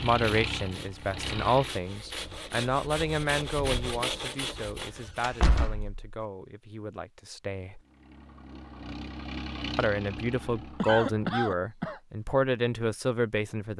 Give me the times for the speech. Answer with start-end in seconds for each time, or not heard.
0.0-7.8, 9.8-13.7.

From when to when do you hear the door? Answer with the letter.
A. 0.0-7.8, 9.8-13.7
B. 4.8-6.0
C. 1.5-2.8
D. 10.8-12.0
B.